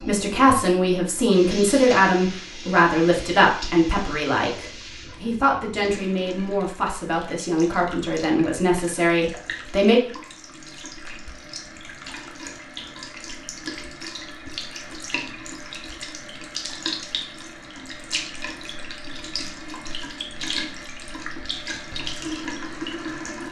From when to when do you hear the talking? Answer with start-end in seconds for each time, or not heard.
0.1-10.0.